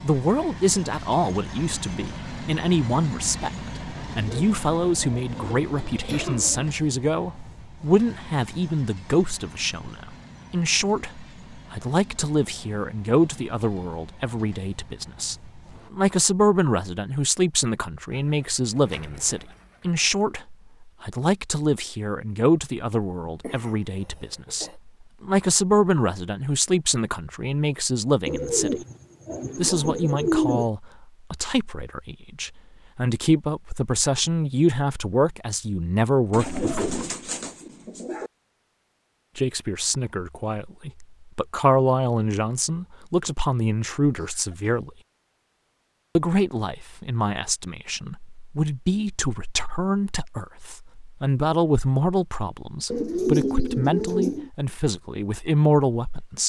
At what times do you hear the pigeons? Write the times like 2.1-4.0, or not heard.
4.2-6.7, 18.1-20.1, 28.2-30.7, 36.3-38.3, 52.9-54.5.